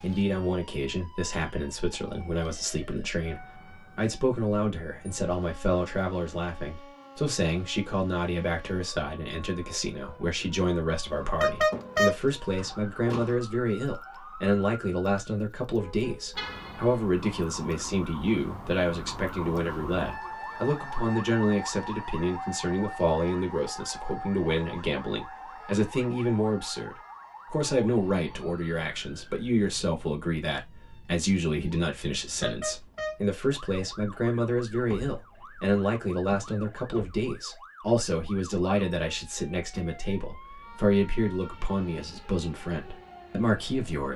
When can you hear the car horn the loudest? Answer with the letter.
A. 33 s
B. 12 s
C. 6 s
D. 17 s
B.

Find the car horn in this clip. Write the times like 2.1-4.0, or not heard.
11.1-12.2, 16.4-17.0, 32.3-33.1.